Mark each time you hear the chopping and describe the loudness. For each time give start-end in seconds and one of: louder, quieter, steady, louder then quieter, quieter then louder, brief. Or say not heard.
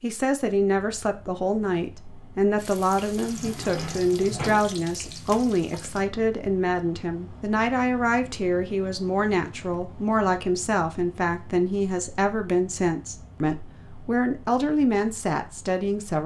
not heard.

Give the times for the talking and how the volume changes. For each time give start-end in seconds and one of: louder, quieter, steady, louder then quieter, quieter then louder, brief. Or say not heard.
0.0-16.2 steady.